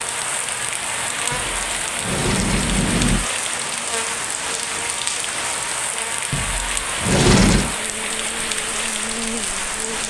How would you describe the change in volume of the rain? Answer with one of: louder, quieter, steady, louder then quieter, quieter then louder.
steady.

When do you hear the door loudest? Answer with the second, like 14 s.
7 s.